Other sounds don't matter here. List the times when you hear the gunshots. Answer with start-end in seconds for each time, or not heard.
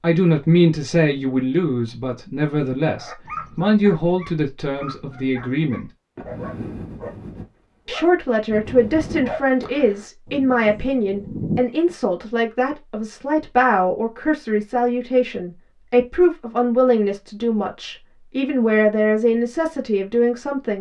not heard.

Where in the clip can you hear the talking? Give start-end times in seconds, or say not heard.
0.0-5.9, 7.8-20.7.